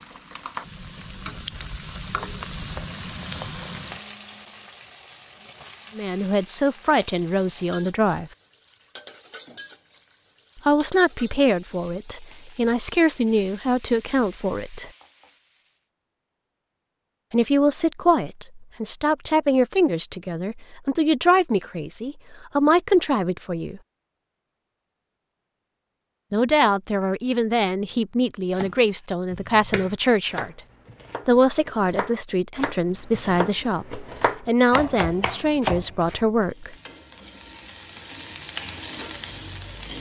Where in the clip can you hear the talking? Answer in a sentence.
You can hear the talking from 6.0 to 8.3 s, from 10.7 to 14.9 s, from 17.3 to 23.8 s, from 26.3 to 30.6 s and from 31.2 to 36.8 s.